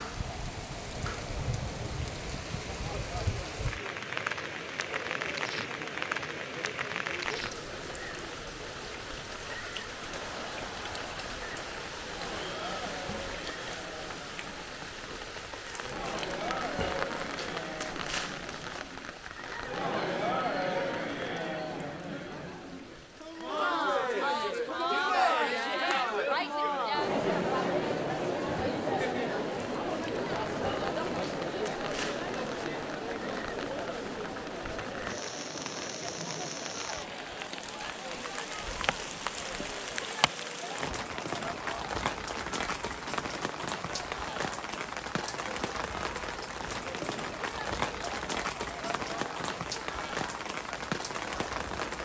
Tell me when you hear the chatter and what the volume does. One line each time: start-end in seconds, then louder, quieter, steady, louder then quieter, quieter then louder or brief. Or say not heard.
0.1-52.0 louder then quieter.